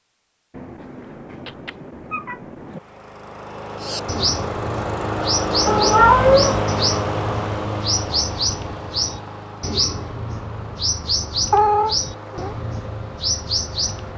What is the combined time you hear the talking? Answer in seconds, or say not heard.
not heard.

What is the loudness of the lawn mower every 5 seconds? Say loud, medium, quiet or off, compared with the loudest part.
medium, loud, quiet.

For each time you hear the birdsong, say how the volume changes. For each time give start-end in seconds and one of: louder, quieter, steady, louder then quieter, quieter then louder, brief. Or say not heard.
3.8-14.1 steady.